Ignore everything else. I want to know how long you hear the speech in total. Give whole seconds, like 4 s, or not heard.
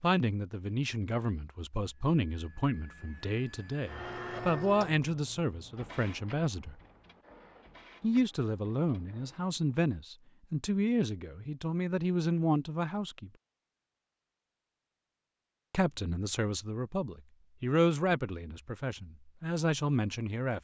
17 s.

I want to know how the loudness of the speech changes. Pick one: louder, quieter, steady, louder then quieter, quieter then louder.
steady.